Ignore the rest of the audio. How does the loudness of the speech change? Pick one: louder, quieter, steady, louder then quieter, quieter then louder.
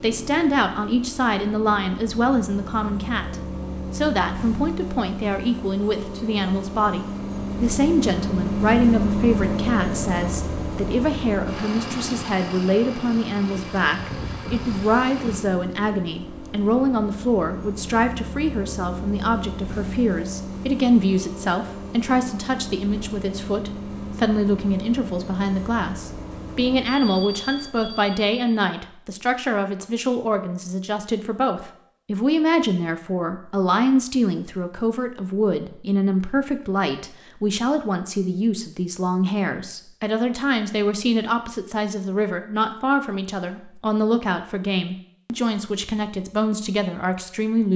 steady.